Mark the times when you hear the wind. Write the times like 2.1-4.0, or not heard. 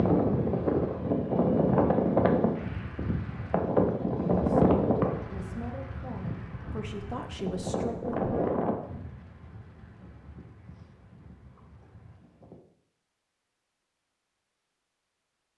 0.0-12.6.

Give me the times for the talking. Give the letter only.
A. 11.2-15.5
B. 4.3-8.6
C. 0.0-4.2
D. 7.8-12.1
B.